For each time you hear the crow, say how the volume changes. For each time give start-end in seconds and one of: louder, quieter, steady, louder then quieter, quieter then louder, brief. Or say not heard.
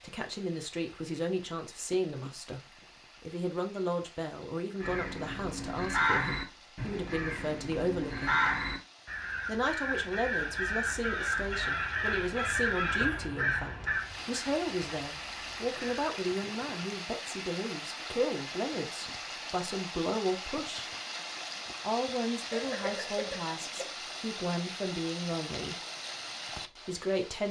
4.8-16.1 quieter.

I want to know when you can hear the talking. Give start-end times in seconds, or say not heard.
0.0-2.6, 3.2-8.4, 9.4-20.9, 21.8-25.8, 26.6-27.4.